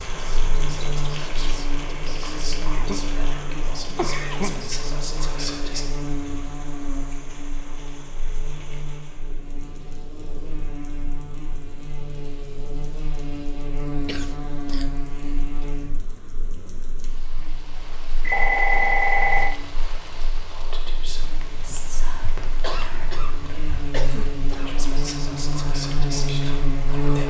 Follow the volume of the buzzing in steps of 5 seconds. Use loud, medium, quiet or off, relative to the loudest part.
medium, medium, medium, quiet, medium, loud.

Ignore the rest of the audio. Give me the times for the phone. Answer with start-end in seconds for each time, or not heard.
18.2-19.6.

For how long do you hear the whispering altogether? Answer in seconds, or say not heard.
12 s.